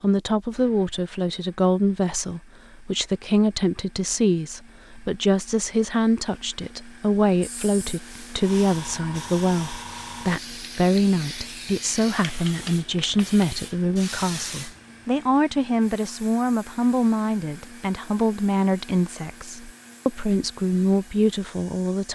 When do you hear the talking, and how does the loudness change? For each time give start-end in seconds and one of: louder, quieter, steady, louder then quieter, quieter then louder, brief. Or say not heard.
0.0-22.0 steady.